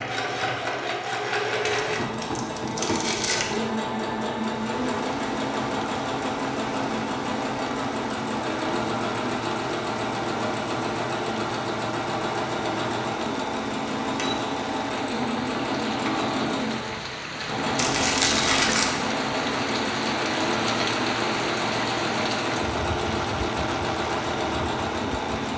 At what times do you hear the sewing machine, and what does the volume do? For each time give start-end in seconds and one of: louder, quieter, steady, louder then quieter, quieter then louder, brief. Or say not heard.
0.0-25.5 steady.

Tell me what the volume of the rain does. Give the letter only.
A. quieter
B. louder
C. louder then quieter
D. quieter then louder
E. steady
B.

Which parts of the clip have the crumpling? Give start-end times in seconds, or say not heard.
1.6-3.6, 17.8-18.9.